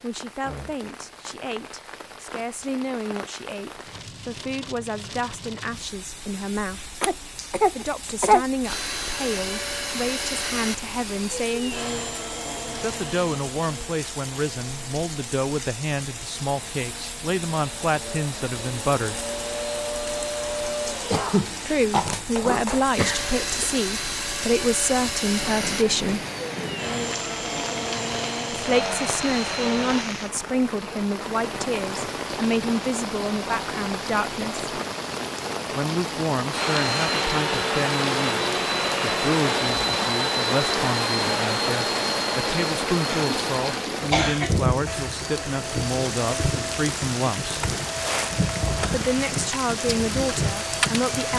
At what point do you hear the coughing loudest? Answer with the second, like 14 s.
8 s.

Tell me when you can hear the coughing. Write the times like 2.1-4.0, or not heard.
7.0-8.4, 21.1-23.6, 43.1-44.6.